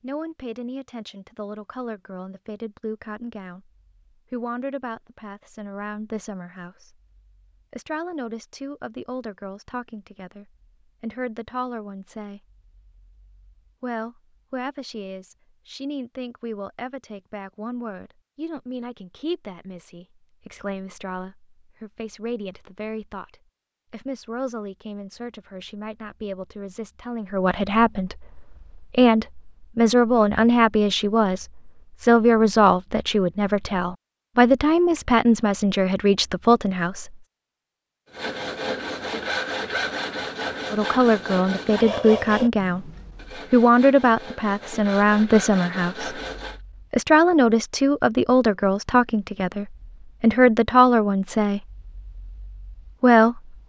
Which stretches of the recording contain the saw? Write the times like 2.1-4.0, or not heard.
38.1-46.6.